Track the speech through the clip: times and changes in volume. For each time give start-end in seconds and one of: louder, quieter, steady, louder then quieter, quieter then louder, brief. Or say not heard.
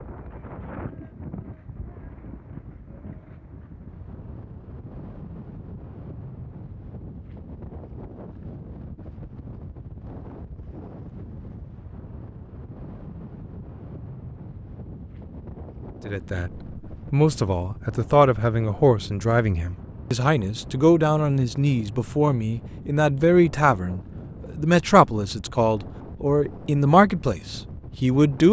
16.1-16.5 brief
17.1-28.4 steady.